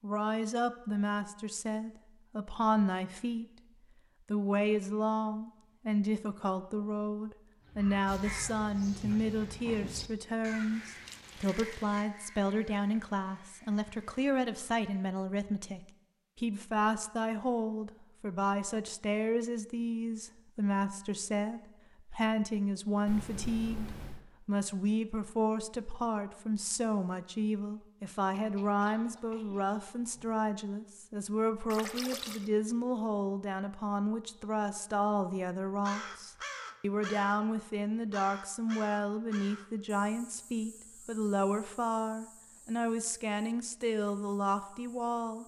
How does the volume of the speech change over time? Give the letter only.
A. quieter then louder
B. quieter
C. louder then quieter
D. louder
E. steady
E.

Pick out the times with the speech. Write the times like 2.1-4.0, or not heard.
0.0-3.5, 4.3-45.4.